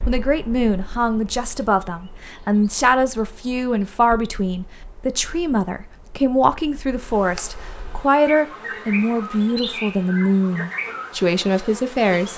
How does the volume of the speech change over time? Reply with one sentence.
The volume of the speech stays about the same.